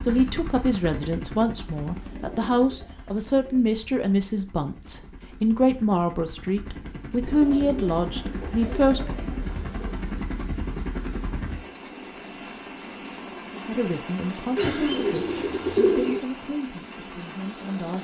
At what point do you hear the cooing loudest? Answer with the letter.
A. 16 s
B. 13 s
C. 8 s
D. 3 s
A.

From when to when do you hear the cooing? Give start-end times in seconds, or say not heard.
1.9-3.8, 7.2-9.9, 14.6-16.2.